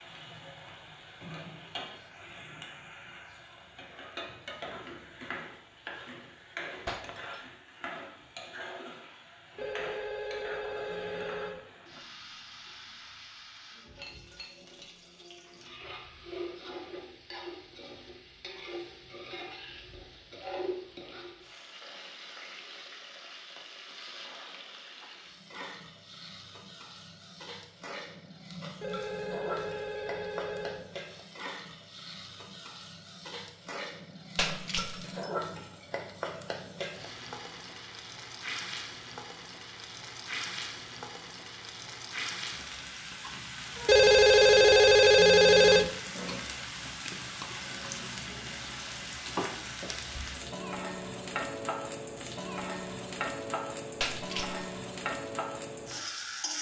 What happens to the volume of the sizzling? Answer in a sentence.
The loudness of the sizzling goes up.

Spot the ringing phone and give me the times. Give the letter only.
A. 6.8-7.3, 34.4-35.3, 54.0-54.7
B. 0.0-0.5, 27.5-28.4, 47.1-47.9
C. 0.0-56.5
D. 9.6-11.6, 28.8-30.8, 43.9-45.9
D.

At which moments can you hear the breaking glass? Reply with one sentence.
The breaking glass can be heard from 6.8 to 7.3 s, from 34.4 to 35.3 s and from 54.0 to 54.7 s.